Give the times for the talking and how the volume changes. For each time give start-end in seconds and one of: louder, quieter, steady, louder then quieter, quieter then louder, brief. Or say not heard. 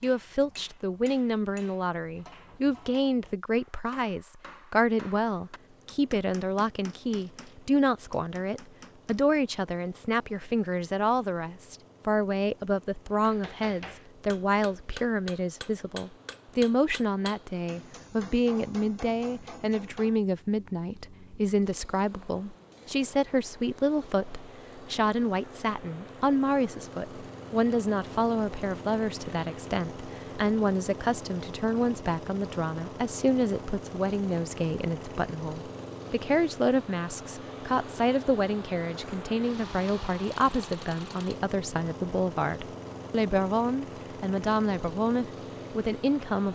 0.0-46.5 steady.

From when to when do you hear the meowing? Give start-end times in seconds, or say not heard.
not heard.